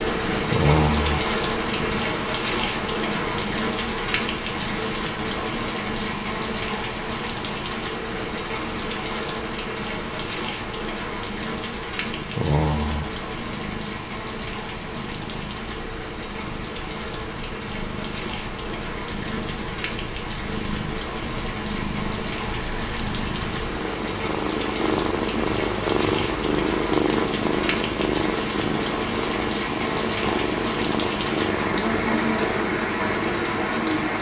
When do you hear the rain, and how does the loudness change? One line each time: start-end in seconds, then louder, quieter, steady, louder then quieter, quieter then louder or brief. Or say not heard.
0.0-34.1 quieter then louder.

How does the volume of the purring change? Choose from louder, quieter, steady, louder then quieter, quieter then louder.
quieter then louder.